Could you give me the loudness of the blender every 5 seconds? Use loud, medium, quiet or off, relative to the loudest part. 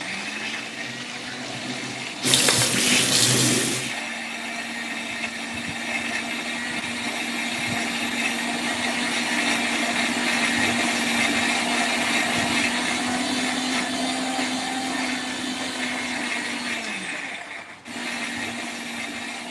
medium, loud, loud, medium.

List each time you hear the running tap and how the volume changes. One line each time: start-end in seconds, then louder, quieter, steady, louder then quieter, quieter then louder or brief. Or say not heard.
0.0-4.0 louder.